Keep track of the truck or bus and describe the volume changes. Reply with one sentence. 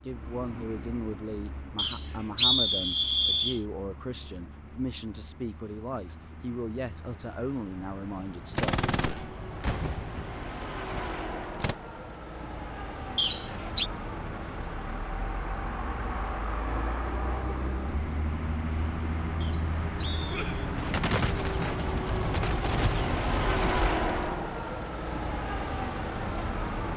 The loudness of the truck or bus goes up.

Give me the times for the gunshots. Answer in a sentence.
The gunshots can be heard from 8.5 to 11.8 s and from 20.3 to 24.3 s.